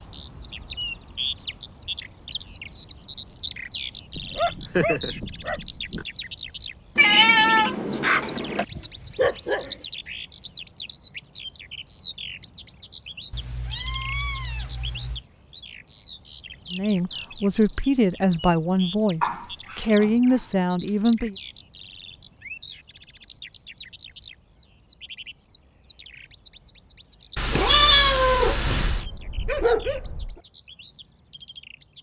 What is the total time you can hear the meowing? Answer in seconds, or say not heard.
5 s.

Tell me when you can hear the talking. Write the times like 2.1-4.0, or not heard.
16.7-21.4.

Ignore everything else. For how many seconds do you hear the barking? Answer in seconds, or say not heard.
7 s.